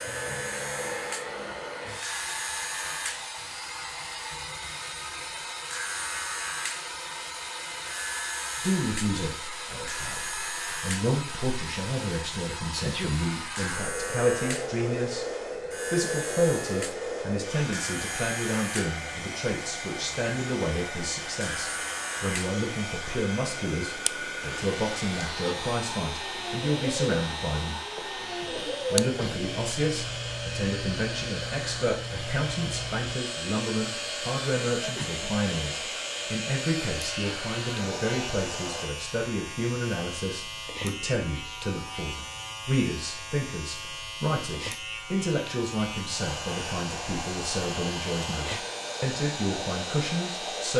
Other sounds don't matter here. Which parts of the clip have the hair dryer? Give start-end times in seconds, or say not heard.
0.0-38.9, 46.1-50.7.